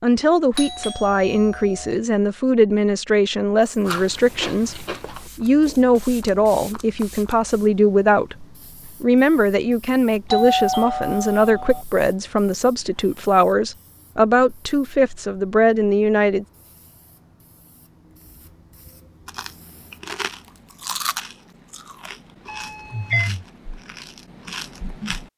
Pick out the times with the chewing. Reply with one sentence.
You can hear the chewing from 3.8 to 5.8 s and from 19.2 to 25.3 s.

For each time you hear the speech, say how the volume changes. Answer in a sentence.
You can hear the speech from 0.0 to 16.4 s, at a steady volume.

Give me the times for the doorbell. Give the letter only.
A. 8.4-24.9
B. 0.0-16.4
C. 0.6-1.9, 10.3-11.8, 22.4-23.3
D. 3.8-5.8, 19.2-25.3
C.